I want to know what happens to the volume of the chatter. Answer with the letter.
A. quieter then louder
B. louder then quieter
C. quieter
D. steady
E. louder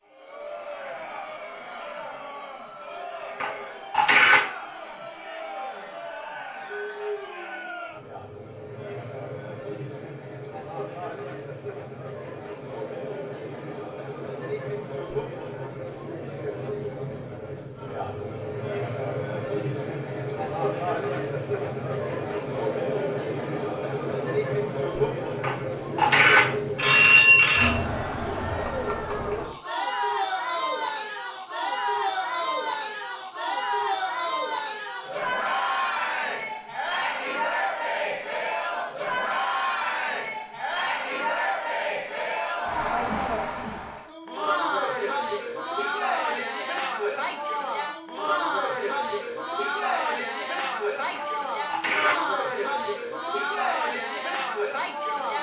E.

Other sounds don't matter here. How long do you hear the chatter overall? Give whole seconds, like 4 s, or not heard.
55 s.